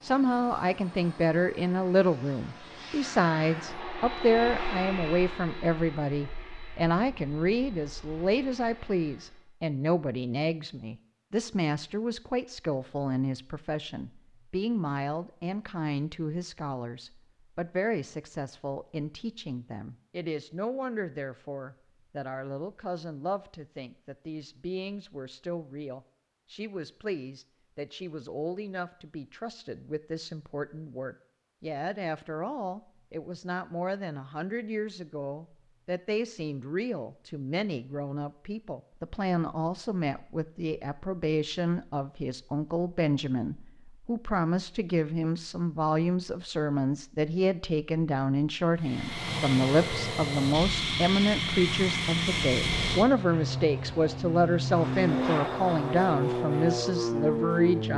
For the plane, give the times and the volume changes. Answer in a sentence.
You can hear the plane from 0.0 to 9.4 s, getting louder then quieter; and from 48.8 to 57.9 s, at a steady volume.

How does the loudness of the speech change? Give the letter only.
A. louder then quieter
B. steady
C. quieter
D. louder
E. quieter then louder
E.